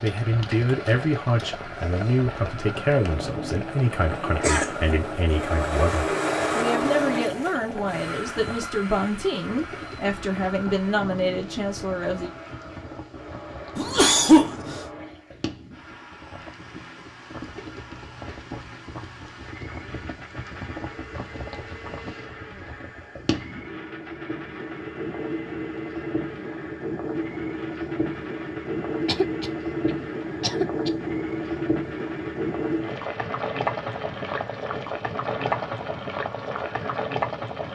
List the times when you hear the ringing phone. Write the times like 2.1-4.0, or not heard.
not heard.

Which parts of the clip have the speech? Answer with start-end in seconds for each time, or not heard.
0.0-12.3.